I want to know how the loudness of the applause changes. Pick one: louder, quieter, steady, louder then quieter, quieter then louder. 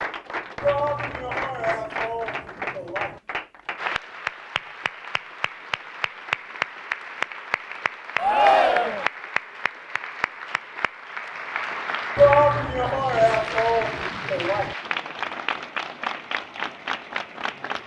steady.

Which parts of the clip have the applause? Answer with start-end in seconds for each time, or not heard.
0.0-17.8.